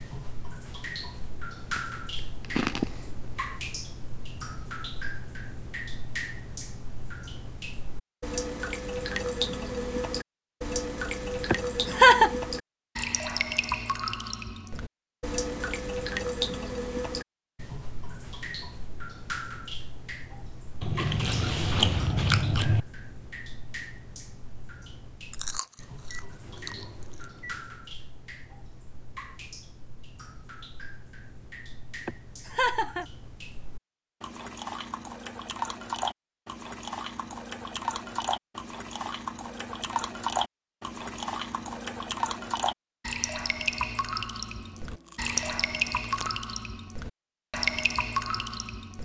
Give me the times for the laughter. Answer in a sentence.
You can hear the laughter from 11.5 to 12.3 s and from 32.0 to 33.0 s.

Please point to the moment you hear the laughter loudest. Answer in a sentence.
The volume of the laughter peaks at 12 seconds.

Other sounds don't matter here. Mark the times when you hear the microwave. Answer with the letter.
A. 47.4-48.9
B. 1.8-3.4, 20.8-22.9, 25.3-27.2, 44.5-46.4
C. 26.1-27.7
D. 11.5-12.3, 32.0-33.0
C.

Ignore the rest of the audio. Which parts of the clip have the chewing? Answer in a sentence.
You can hear the chewing from 1.8 to 3.4 s, from 20.8 to 22.9 s, from 25.3 to 27.2 s and from 44.5 to 46.4 s.